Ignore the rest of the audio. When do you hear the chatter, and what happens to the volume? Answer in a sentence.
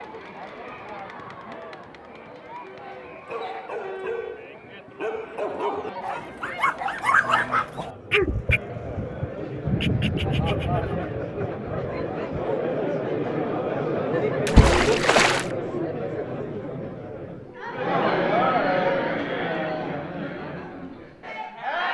You can hear the chatter from 0.0 to 21.8 s, getting louder.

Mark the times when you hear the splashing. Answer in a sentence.
The splashing can be heard from 14.4 to 15.4 s.